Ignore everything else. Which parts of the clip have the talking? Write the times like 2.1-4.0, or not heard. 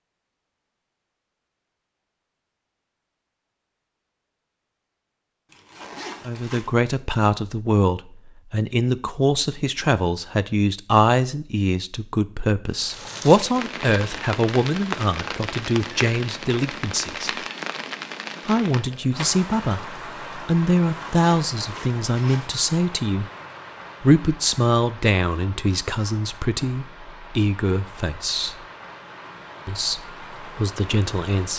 6.2-17.4, 18.4-23.3, 24.0-28.6, 29.6-31.5.